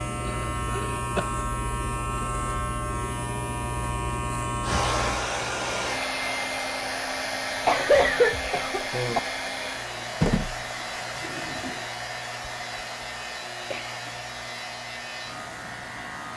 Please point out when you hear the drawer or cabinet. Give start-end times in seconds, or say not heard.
not heard.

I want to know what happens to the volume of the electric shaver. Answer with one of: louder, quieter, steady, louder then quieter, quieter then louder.
quieter.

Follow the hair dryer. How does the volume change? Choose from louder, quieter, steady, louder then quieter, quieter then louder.
quieter.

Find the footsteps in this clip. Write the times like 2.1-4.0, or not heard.
not heard.